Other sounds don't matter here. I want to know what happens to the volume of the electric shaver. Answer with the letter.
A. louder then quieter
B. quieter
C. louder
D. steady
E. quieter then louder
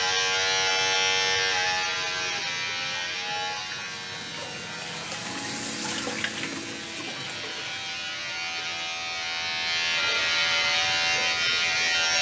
E.